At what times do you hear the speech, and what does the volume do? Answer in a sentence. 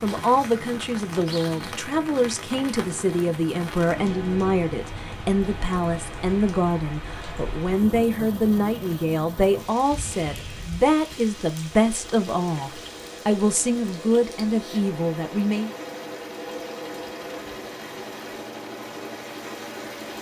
You can hear the speech from 0.0 to 15.7 s, at a steady volume.